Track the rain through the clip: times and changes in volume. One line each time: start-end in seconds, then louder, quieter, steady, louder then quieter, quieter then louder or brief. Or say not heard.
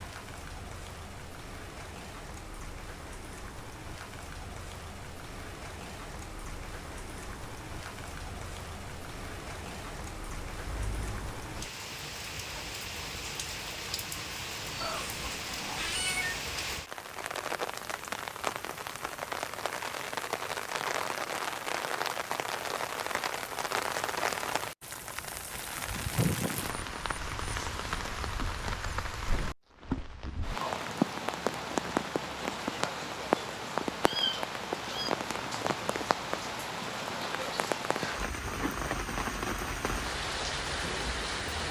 0.0-41.6 louder.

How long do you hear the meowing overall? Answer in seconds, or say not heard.
3 s.